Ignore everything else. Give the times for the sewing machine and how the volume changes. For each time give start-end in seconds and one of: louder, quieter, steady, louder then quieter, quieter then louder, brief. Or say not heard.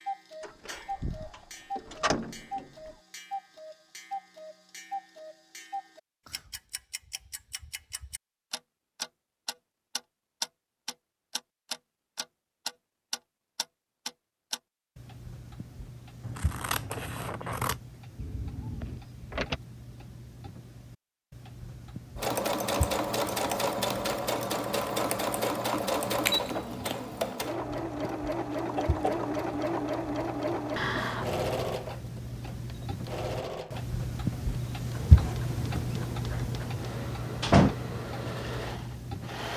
22.1-39.5 quieter.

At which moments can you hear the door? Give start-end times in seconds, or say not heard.
0.4-2.9, 18.1-19.6, 37.0-37.8.